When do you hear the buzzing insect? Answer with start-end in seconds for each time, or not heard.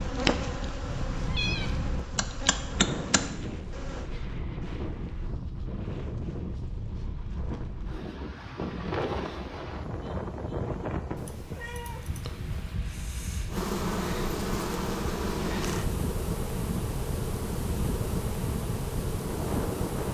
0.0-4.0, 13.5-20.1.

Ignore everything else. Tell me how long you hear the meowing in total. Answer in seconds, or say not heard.
3 s.